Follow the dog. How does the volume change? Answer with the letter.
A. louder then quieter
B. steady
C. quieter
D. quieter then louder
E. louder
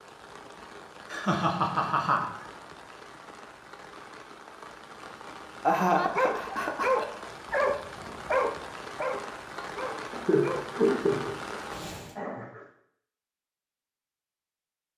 C.